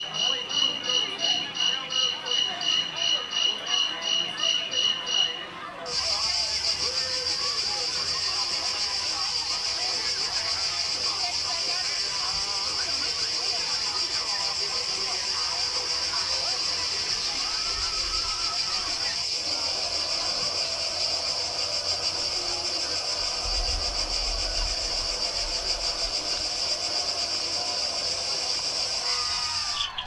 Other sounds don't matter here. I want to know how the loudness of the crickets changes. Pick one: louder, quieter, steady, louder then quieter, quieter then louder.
steady.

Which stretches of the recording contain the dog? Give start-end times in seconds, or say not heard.
not heard.